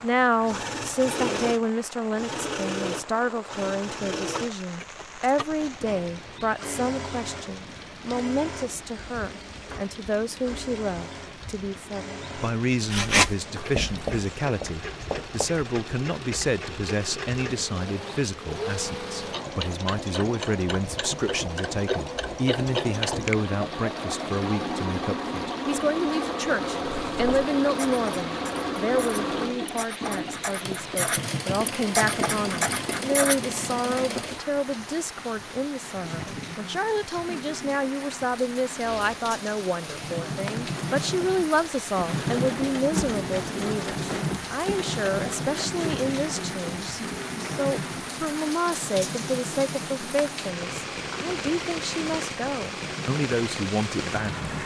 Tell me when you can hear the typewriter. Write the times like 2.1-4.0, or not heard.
not heard.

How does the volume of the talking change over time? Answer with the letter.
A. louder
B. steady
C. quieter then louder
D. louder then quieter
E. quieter
B.